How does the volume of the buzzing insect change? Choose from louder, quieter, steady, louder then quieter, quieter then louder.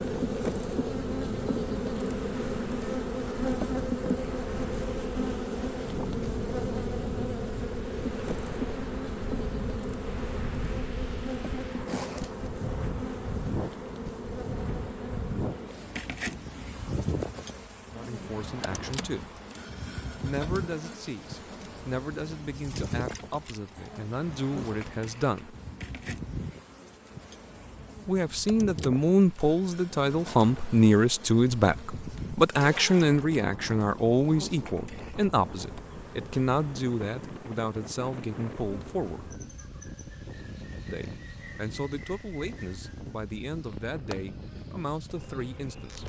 quieter.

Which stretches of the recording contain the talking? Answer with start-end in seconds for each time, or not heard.
17.9-19.4, 20.2-25.6, 28.1-39.3, 40.9-46.0.